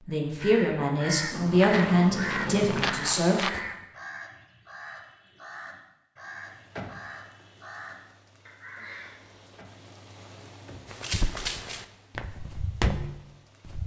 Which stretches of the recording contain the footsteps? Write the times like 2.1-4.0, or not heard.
1.6-3.6, 10.9-13.8.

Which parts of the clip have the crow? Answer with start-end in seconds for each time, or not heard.
0.2-9.2.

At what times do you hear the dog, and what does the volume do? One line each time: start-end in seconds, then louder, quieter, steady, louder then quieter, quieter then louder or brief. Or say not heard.
not heard.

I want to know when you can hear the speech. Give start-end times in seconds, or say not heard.
0.0-3.5.